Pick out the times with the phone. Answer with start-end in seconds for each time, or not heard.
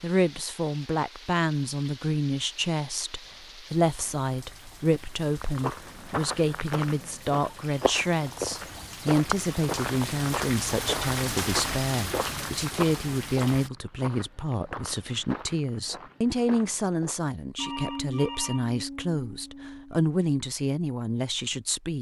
17.6-20.0.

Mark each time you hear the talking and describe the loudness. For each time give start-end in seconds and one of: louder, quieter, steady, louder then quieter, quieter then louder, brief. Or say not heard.
0.0-21.9 steady.